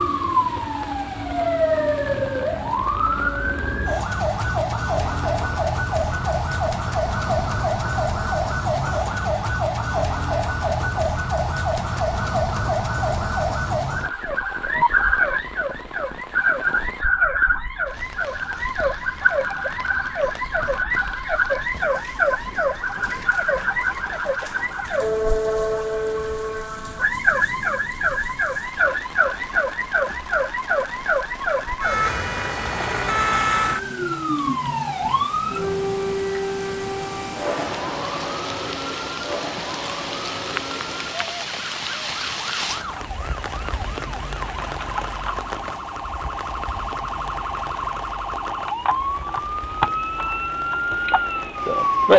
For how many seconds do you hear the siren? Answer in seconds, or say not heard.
52 s.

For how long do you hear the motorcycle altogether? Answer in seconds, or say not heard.
not heard.